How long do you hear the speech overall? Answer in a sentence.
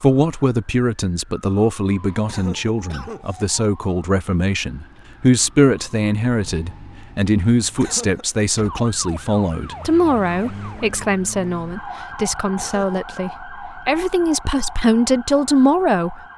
You can hear the speech for 16 seconds altogether.